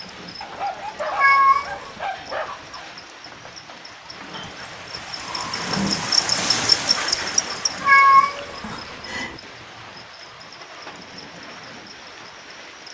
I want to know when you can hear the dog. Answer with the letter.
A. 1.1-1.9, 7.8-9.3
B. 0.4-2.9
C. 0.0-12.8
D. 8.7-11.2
B.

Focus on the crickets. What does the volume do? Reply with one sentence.
The volume of the crickets goes up, then down.